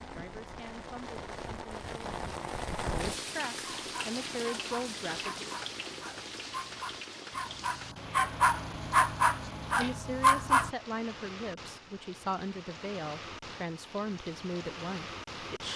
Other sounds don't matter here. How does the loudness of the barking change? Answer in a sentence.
The loudness of the barking goes up.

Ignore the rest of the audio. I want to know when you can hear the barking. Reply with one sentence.
You can hear the barking from 3.6 to 10.7 s.